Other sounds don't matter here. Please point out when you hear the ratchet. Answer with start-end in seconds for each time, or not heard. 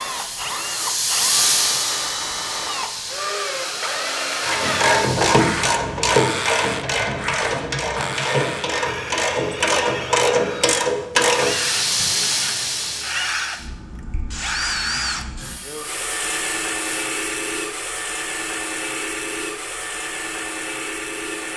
4.4-12.1.